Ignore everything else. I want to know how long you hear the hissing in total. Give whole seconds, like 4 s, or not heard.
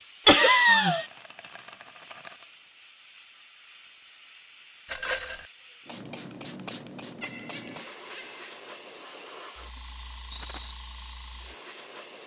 12 s.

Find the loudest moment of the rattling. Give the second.
5 s.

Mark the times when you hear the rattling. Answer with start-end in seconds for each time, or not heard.
0.6-2.5, 4.8-5.5, 10.3-10.8.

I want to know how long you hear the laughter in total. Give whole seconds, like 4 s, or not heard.
2 s.